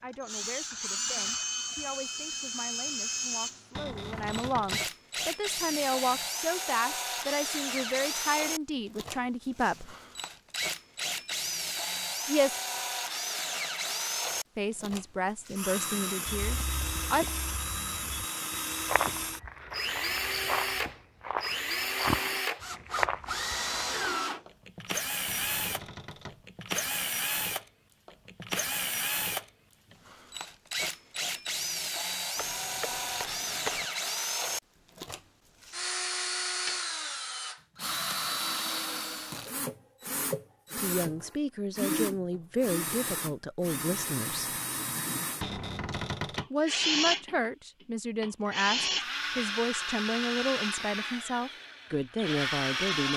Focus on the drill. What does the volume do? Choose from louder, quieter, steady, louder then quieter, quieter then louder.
steady.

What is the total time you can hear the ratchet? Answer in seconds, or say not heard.
not heard.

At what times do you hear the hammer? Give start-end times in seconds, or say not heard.
32.4-33.9.